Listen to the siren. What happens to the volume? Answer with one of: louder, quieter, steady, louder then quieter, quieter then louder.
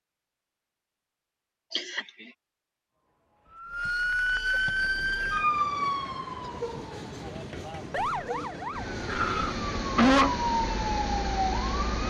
quieter then louder.